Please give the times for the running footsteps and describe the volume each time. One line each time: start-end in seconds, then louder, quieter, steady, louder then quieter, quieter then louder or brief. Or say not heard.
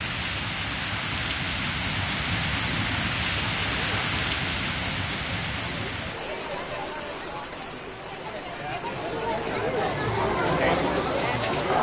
not heard.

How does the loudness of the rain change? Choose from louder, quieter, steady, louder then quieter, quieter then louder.
quieter.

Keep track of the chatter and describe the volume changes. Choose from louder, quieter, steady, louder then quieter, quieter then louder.
louder.